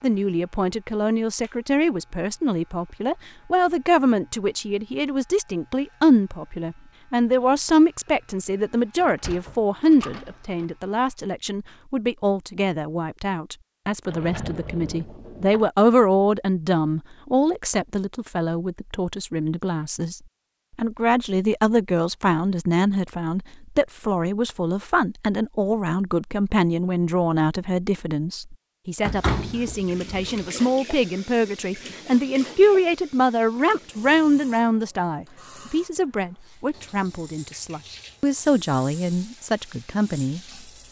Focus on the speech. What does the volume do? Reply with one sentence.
The volume of the speech stays about the same.